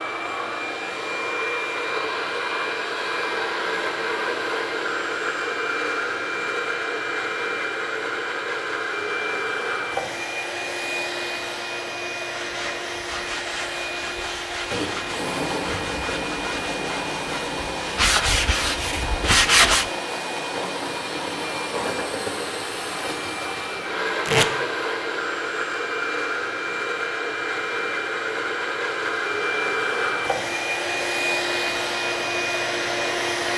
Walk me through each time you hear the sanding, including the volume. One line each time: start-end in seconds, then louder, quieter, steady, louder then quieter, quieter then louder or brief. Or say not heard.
12.3-19.9 louder.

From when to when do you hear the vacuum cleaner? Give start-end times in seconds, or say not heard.
0.0-33.5.